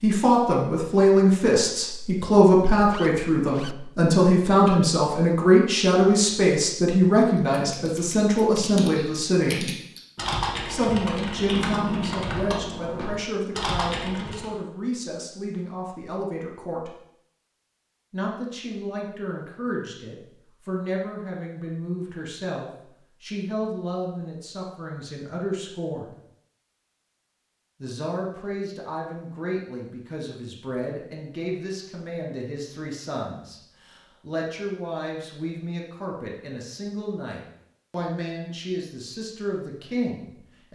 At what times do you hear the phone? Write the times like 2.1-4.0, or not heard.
not heard.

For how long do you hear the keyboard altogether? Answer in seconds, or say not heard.
7 s.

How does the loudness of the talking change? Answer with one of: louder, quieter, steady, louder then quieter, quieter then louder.
quieter.